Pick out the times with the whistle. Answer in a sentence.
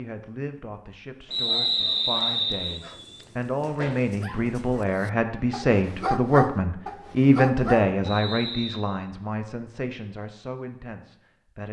You can hear the whistle from 1.3 to 2.8 s and from 8.0 to 8.8 s.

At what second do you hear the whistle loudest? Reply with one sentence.
The loudest moment of the whistle is at 2 seconds.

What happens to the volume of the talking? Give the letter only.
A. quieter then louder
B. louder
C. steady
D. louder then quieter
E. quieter
D.